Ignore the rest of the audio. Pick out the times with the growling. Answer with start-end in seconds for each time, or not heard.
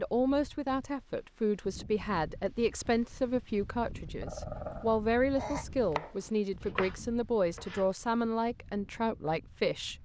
4.2-5.7.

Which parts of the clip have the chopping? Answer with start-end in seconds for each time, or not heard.
5.9-7.9.